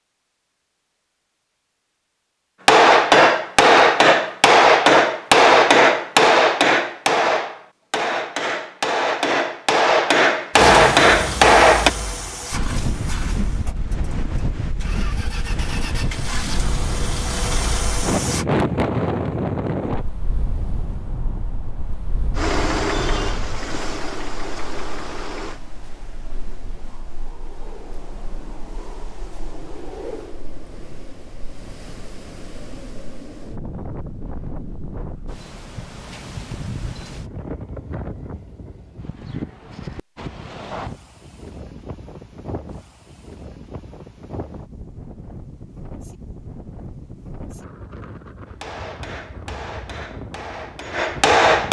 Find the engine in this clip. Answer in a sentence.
You can hear the engine from 10.5 to 18.4 s and from 22.4 to 25.6 s.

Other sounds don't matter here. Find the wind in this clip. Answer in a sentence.
You can hear the wind from 12.5 to 51.6 s.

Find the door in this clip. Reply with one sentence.
You can't hear the door here.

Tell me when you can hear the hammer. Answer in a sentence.
The hammer can be heard from 2.6 to 11.9 s and from 48.5 to 51.6 s.